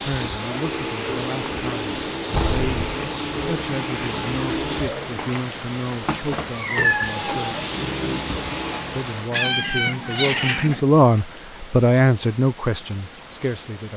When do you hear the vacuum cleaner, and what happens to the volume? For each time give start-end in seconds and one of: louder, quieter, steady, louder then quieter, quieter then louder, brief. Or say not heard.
0.0-9.3 steady.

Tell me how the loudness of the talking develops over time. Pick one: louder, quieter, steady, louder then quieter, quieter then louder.
louder.